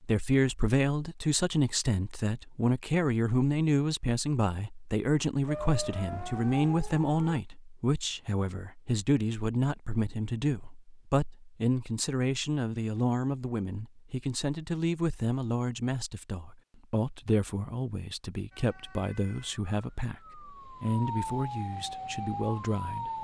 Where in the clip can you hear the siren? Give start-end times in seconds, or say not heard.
5.5-7.4, 18.5-23.1.